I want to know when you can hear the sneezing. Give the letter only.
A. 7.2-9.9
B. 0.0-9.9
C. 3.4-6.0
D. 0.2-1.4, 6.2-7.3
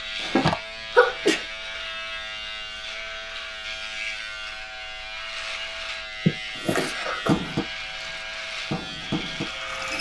D.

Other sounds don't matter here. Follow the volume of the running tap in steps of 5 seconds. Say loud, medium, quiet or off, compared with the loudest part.
off, loud.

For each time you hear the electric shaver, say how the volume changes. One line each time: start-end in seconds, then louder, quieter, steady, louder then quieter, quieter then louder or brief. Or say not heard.
0.0-9.9 steady.